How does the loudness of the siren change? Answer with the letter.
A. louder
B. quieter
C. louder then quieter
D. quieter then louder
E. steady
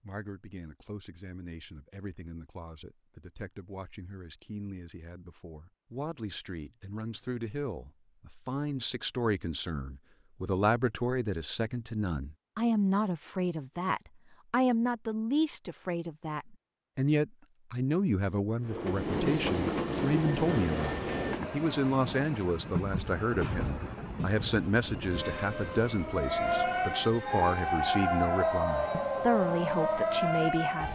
E.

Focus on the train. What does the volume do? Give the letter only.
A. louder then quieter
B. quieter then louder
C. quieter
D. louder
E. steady
C.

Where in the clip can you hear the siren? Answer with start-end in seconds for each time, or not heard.
25.9-30.8.